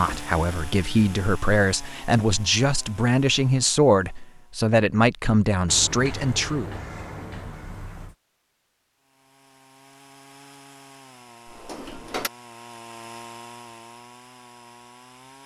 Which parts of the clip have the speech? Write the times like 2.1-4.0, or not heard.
0.0-6.8.